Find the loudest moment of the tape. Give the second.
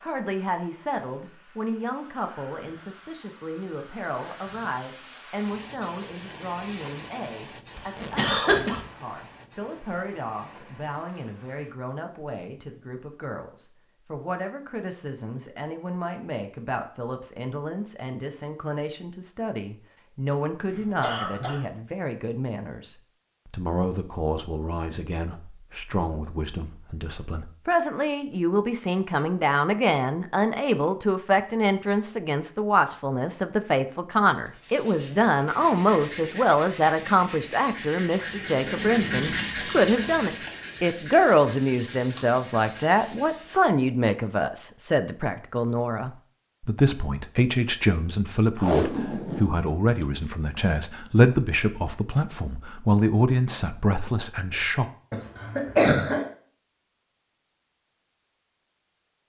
49 s.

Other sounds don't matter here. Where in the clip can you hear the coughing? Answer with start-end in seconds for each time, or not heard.
8.2-8.8, 20.7-21.6, 55.1-56.2.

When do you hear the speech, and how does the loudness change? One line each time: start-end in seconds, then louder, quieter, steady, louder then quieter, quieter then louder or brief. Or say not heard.
0.0-54.9 louder.